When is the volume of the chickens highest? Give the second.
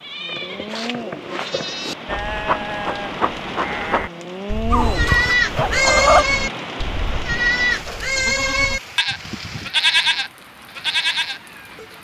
6 s.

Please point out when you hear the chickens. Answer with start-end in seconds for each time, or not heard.
4.7-6.2.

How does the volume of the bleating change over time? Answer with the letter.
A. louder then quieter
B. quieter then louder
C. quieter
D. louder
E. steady
D.